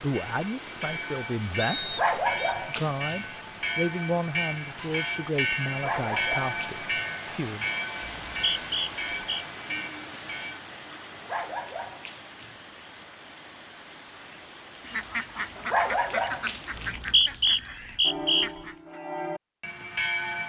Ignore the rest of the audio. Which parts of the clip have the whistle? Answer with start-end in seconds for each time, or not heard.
1.6-2.5, 8.0-9.4, 16.7-18.5.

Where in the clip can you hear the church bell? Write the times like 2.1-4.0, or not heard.
0.1-10.6, 18.1-20.4.